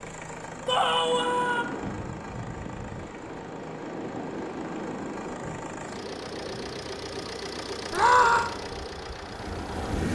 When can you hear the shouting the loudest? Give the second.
8 s.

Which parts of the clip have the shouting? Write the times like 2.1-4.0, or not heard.
0.7-1.6, 7.9-8.5.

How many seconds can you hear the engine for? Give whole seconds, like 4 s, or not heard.
10 s.